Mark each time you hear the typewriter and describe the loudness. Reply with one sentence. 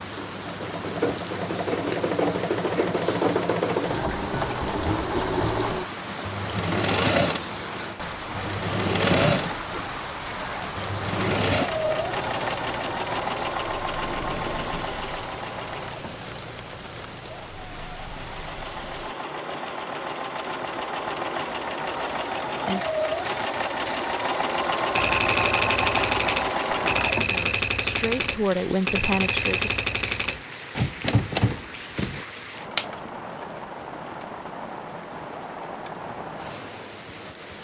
The typewriter can be heard from 24.9 to 32.2 s, at a steady volume.